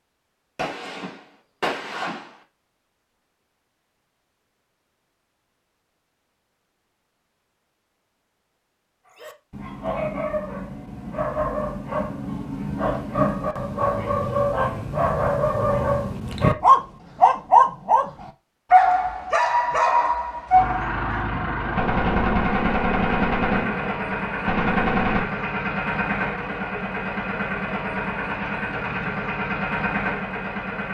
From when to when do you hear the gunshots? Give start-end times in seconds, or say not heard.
0.6-2.2, 21.8-25.2.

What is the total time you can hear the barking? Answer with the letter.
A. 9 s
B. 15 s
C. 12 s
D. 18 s
C.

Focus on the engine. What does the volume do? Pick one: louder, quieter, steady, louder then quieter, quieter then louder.
steady.